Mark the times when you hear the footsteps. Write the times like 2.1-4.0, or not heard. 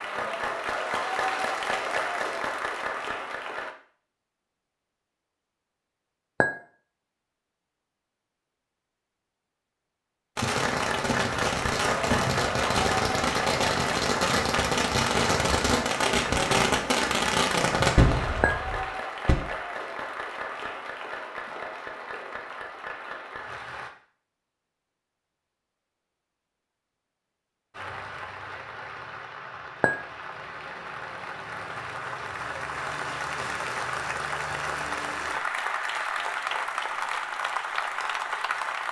not heard.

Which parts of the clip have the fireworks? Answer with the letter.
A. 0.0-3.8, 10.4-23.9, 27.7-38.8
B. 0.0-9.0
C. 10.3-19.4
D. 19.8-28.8
C.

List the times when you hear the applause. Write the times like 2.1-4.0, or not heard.
0.0-3.8, 10.4-23.9, 27.7-38.8.